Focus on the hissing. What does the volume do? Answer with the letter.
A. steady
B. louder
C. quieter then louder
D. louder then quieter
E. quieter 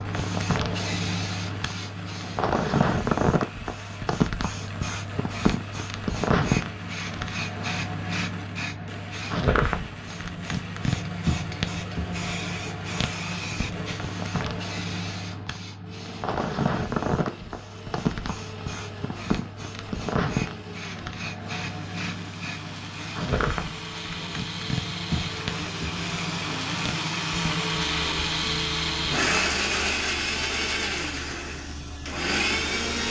E.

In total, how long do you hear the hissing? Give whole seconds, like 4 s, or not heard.
33 s.